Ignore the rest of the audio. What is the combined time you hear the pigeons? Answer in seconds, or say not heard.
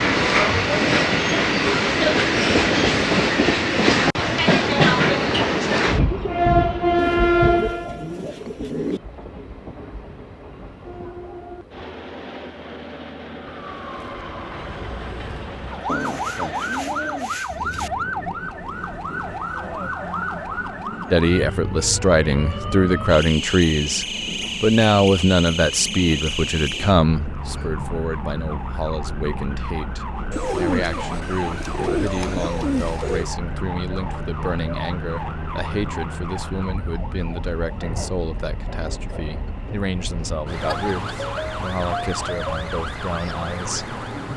7 s.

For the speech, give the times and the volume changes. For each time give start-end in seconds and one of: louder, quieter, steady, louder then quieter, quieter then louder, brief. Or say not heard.
21.1-44.3 quieter.